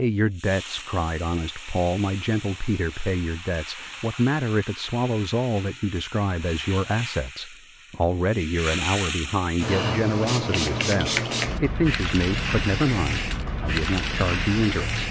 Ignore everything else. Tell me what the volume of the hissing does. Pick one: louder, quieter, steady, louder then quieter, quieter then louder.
louder.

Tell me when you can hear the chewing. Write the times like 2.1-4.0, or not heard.
not heard.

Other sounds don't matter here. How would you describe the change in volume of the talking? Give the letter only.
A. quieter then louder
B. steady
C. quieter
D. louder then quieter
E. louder
B.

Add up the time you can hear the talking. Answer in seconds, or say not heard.
15 s.